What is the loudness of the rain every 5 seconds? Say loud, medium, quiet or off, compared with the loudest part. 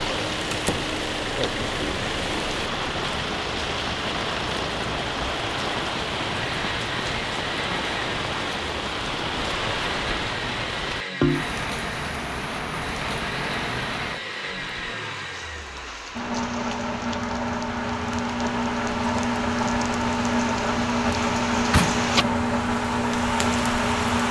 loud, loud, loud, medium, loud.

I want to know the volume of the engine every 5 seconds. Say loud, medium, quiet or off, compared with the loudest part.
medium, medium, medium, loud, loud.